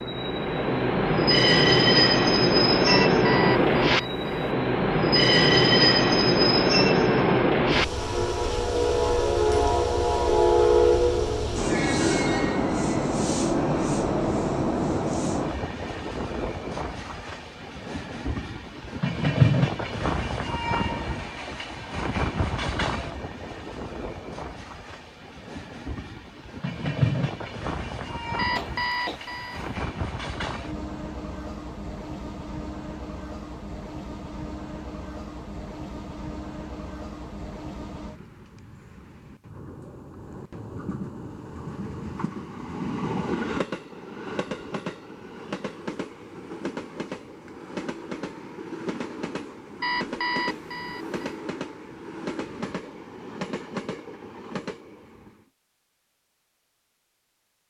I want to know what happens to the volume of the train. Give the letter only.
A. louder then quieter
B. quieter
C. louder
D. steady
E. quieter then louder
B.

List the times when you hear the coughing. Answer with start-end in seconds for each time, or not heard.
28.5-29.2.